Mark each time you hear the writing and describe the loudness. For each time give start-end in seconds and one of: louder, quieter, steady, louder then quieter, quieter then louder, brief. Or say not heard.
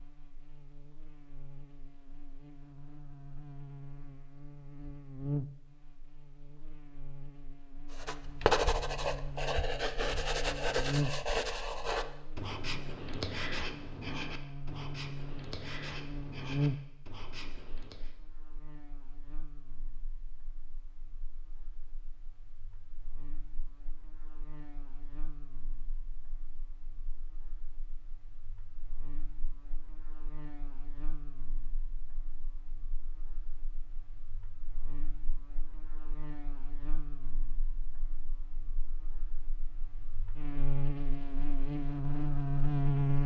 7.9-18.1 quieter.